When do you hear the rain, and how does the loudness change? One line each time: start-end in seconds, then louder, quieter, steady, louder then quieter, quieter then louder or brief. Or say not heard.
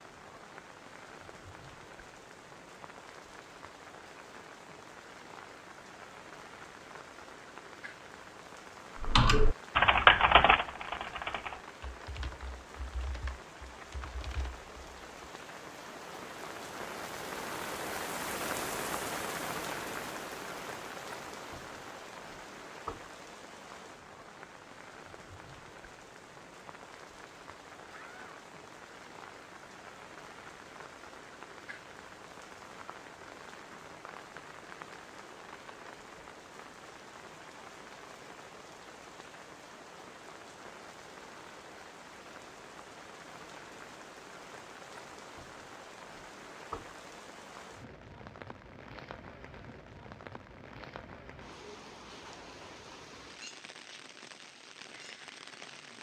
0.0-55.9 louder then quieter.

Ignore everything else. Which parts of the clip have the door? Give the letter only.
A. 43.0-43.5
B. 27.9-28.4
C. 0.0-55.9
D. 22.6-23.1
B.